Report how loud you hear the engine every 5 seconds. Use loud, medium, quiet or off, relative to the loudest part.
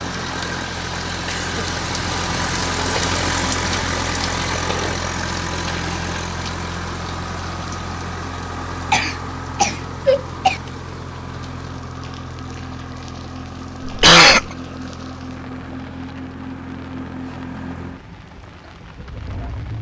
loud, loud, medium, medium.